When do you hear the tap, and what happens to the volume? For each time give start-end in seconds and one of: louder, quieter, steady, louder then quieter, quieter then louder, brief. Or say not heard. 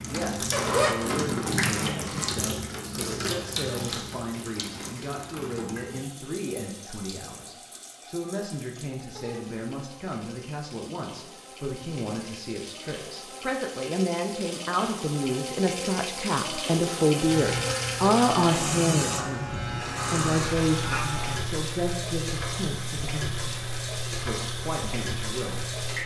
0.0-26.0 quieter then louder.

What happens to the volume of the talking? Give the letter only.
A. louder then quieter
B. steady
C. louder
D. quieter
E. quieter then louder
A.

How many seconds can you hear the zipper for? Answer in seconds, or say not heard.
2 s.